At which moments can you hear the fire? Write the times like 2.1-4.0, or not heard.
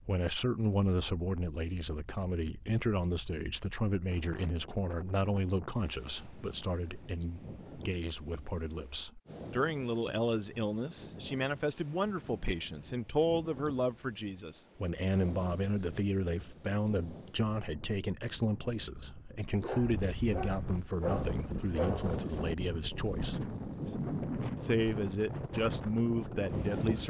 not heard.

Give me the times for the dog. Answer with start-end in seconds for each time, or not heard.
19.6-22.1.